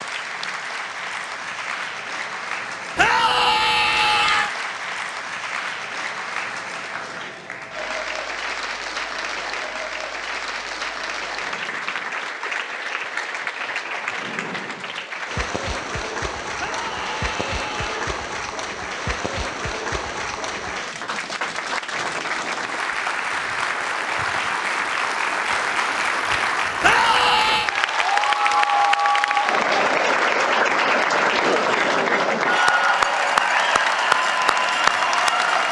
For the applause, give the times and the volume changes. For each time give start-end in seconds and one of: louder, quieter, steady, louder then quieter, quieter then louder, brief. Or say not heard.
0.0-35.6 louder.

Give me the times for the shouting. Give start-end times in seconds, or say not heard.
3.0-4.5, 16.6-18.1, 26.8-27.7.